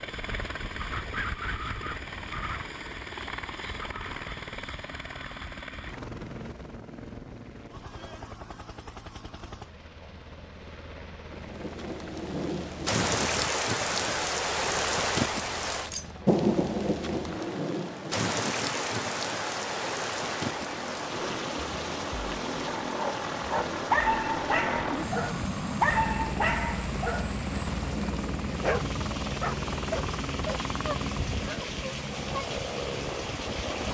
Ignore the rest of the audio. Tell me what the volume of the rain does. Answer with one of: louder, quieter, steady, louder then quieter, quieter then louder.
quieter.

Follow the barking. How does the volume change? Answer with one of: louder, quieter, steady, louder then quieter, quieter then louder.
quieter.